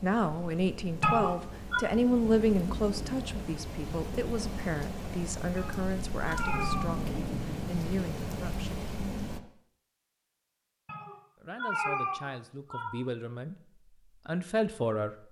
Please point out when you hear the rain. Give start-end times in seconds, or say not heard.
0.0-9.4.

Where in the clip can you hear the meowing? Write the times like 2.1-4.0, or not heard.
1.0-1.8, 5.5-7.0, 10.8-12.9.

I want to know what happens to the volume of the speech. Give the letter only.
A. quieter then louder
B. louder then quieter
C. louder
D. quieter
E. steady
A.